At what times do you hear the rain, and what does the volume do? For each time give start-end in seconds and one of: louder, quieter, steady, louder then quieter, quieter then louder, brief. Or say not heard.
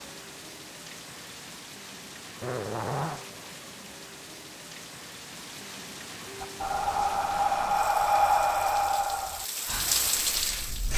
0.0-10.9 louder.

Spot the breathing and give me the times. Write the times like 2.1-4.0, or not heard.
6.4-10.9.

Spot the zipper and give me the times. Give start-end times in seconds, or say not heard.
2.4-3.2.